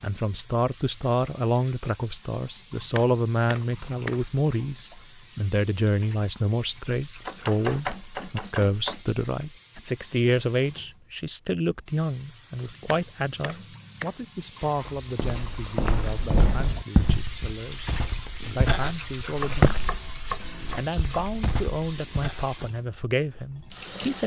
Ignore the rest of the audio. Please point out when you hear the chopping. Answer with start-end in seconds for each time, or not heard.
2.8-4.2, 7.2-9.1, 12.7-14.4, 19.3-21.3.